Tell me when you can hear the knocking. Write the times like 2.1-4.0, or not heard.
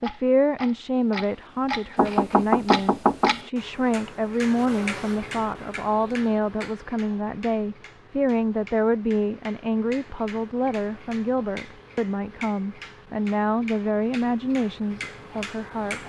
1.9-3.4.